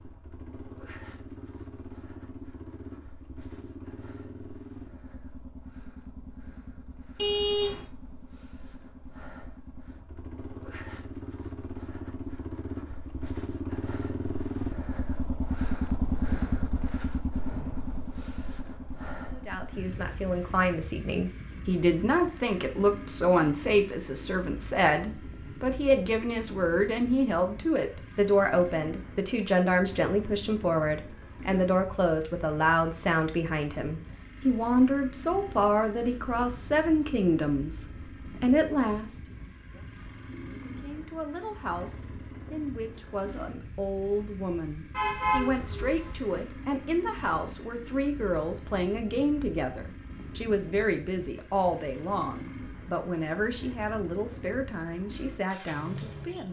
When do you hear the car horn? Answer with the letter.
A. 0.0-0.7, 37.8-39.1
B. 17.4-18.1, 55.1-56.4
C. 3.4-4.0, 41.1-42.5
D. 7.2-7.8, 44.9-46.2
D.